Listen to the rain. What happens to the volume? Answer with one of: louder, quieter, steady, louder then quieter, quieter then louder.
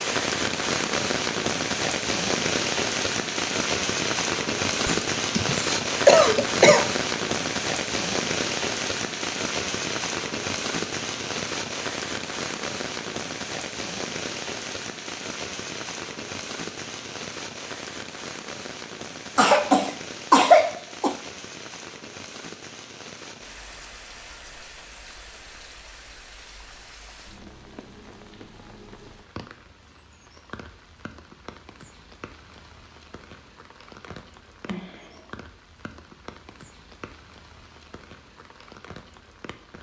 quieter.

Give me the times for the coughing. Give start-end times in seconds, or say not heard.
4.8-6.8, 19.4-21.1, 34.6-35.4.